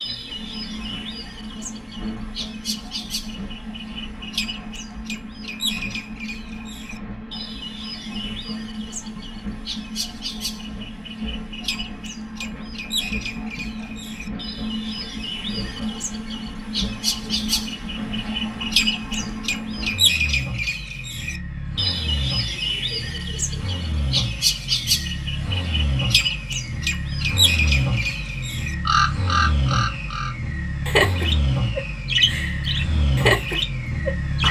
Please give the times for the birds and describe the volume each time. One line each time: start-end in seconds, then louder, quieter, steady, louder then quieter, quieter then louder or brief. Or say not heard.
0.0-34.4 louder.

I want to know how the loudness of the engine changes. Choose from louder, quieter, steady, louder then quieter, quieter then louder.
louder.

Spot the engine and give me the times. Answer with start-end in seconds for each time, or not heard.
0.0-34.4.